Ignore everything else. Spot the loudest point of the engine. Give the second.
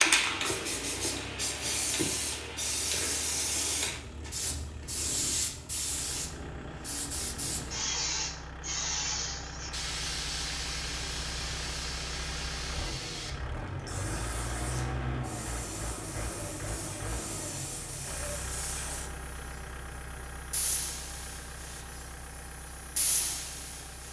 15 s.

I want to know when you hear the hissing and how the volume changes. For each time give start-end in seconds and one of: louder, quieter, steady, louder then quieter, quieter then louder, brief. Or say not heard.
0.0-24.0 quieter.